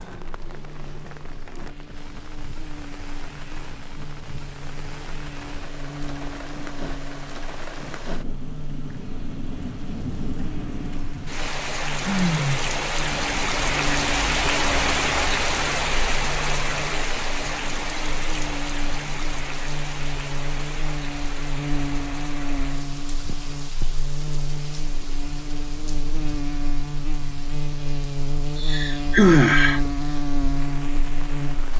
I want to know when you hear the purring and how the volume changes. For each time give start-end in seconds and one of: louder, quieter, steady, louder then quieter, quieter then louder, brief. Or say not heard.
not heard.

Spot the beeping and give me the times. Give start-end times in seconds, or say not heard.
not heard.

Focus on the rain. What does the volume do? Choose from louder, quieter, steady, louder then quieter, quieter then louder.
louder then quieter.